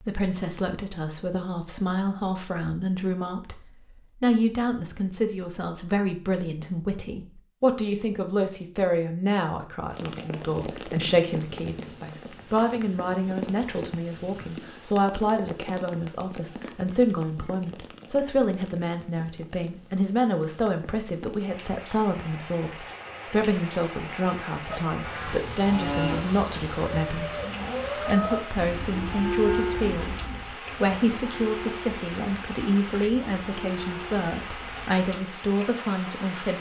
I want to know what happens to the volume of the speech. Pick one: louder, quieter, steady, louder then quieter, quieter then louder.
steady.